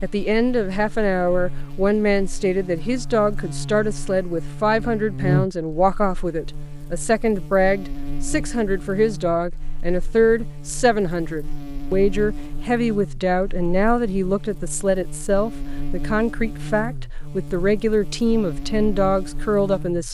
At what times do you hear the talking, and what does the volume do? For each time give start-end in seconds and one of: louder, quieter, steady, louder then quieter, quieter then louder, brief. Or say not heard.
0.0-20.0 steady.